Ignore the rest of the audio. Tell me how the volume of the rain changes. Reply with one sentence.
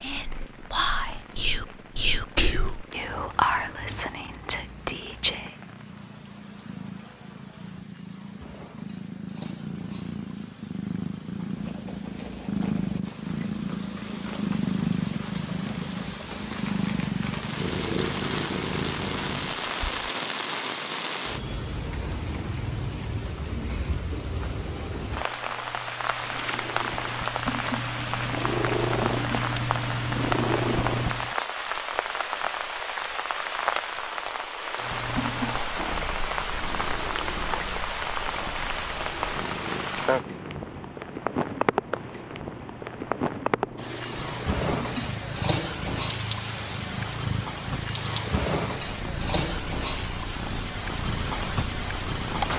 The loudness of the rain goes up.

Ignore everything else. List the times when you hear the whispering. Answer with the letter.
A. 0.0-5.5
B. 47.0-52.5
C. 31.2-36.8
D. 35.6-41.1
A.